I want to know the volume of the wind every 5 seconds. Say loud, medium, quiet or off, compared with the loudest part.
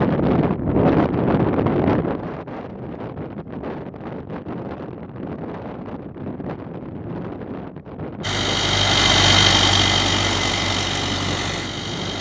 loud, medium, medium.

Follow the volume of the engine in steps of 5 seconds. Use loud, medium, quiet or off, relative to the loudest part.
off, loud, medium.